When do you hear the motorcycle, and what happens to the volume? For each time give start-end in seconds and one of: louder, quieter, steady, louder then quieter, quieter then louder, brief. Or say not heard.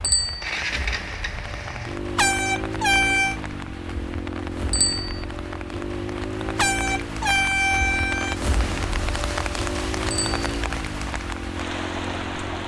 0.2-12.6 steady.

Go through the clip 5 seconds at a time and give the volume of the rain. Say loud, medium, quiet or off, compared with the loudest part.
medium, loud, loud.